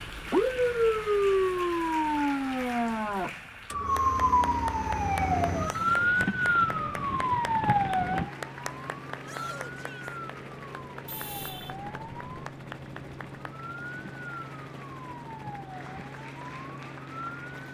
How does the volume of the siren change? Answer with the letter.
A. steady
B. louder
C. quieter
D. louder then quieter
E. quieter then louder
C.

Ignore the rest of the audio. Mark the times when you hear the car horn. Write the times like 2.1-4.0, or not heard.
11.1-11.8.